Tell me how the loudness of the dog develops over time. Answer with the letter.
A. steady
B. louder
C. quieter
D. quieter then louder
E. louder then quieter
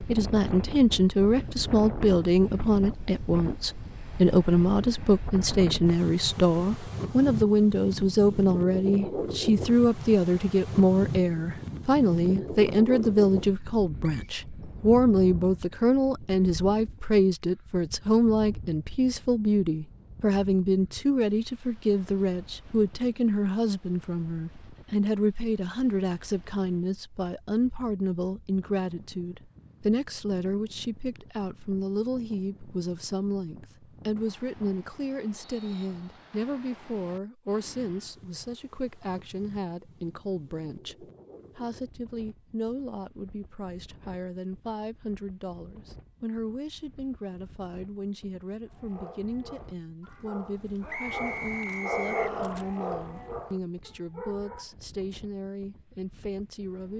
E.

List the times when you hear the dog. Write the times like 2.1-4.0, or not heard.
48.6-54.8.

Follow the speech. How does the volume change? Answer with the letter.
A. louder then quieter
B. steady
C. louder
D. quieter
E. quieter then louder
D.